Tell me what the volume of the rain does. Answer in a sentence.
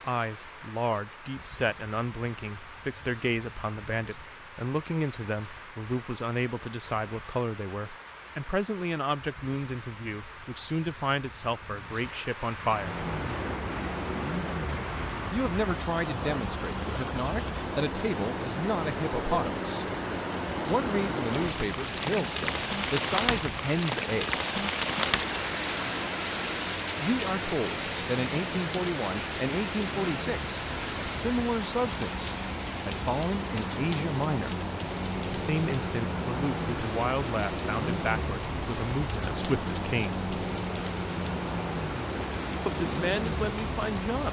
The volume of the rain goes up, then down.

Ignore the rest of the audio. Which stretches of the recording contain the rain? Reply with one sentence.
The rain can be heard from 0.0 to 44.2 s.